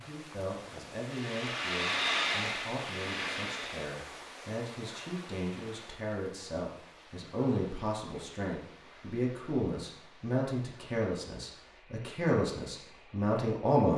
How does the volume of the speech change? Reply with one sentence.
The volume of the speech goes up.